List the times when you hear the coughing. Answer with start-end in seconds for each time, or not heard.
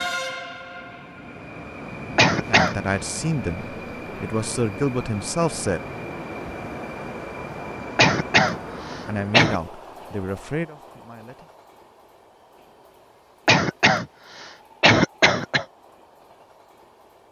2.1-2.8, 8.0-9.6, 13.4-15.7.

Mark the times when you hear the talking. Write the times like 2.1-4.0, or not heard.
2.5-5.8, 9.1-11.5.